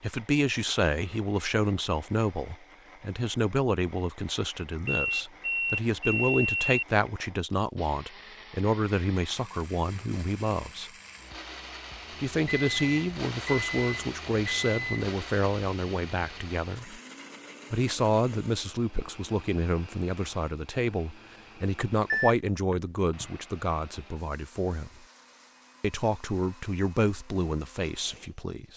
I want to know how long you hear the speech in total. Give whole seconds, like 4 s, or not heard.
26 s.